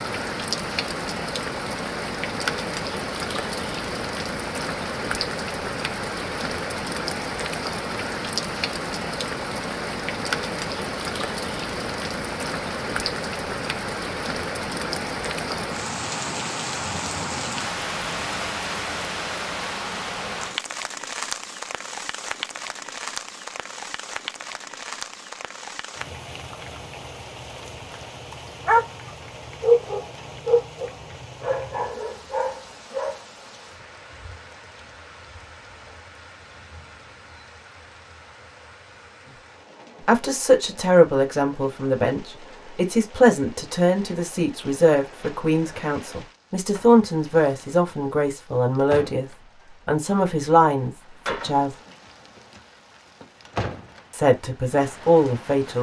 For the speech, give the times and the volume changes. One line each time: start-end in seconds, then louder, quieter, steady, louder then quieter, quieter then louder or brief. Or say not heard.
40.0-51.8 steady
54.1-55.7 brief.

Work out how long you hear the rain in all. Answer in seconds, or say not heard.
56 s.